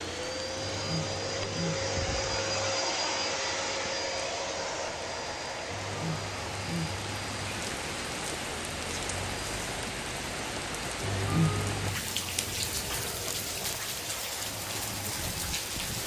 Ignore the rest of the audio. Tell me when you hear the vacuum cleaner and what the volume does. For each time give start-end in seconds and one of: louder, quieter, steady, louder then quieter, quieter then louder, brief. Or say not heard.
0.0-16.0 quieter.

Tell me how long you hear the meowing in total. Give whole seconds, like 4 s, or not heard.
5 s.